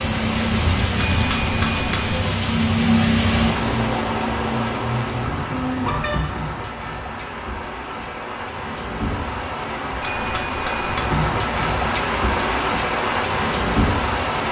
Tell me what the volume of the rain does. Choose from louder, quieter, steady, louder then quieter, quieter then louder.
quieter then louder.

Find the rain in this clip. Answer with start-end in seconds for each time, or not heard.
0.0-14.4.